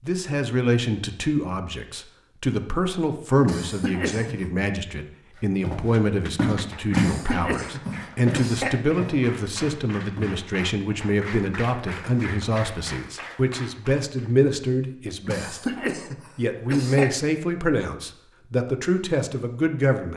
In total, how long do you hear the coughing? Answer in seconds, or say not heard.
5 s.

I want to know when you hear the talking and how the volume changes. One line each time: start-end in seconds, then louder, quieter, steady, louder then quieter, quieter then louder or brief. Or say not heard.
0.0-20.1 steady.